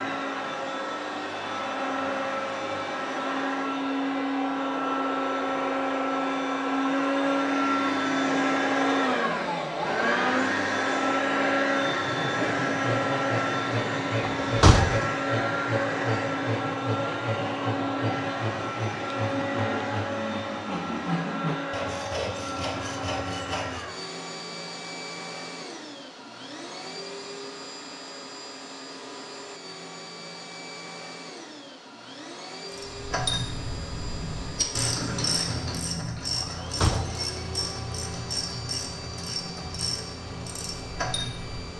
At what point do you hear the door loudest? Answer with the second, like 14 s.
15 s.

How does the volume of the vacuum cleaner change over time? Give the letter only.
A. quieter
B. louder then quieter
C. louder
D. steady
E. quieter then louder
A.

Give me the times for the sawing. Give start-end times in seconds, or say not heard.
11.8-23.9.